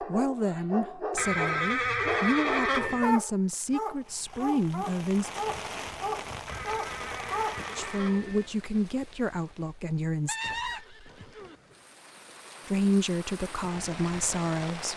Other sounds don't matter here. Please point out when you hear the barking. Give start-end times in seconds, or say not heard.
0.0-7.6.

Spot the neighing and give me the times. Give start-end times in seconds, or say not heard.
1.1-3.2, 6.5-8.5, 10.2-11.6.